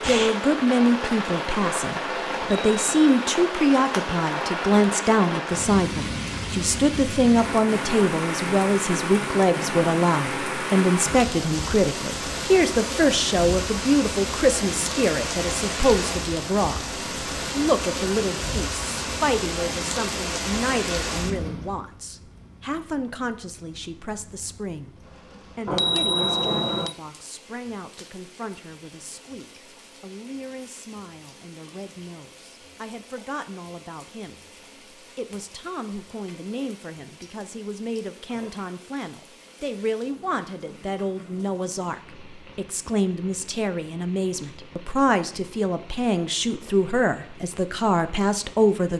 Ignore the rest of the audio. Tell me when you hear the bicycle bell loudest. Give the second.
26 s.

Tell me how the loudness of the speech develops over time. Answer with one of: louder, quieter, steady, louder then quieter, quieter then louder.
quieter then louder.